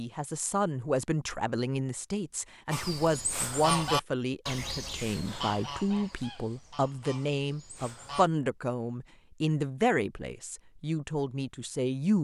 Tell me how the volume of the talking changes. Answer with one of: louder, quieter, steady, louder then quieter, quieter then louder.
steady.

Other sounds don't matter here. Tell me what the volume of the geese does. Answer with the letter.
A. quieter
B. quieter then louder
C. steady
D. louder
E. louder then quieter
A.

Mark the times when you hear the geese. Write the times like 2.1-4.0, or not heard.
2.7-8.3.